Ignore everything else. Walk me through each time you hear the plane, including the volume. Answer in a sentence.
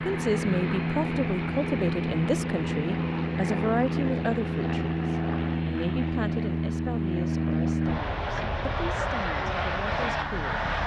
The plane can be heard from 0.0 to 10.8 s, at a steady volume.